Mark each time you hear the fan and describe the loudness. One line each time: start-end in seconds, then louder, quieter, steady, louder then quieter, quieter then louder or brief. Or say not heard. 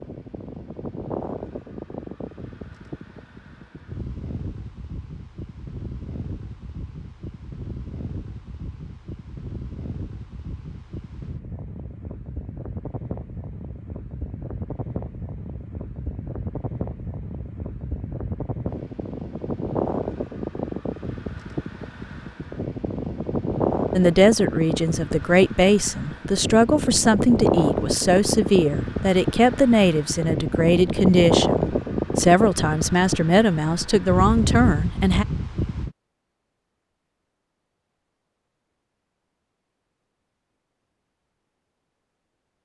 0.0-35.9 louder.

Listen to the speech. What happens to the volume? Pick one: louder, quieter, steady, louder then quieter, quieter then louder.
steady.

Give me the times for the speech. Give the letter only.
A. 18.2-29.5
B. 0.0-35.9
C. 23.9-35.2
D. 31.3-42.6
C.